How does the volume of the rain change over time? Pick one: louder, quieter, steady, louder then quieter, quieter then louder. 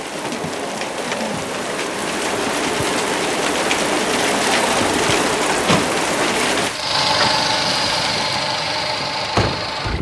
louder then quieter.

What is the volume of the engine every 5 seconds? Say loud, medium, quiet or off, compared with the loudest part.
off, loud.